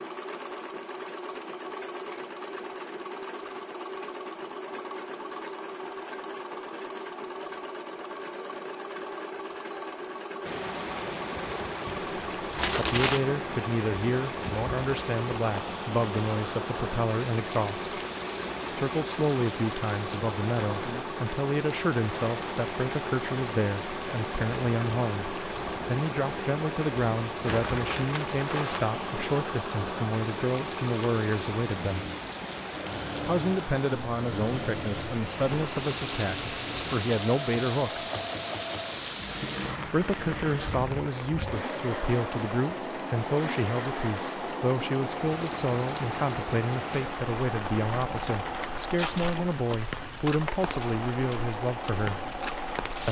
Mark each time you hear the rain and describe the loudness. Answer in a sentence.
You can hear the rain from 10.4 to 53.0 s, at a steady volume.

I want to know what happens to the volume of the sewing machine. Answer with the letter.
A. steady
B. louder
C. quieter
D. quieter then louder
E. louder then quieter
A.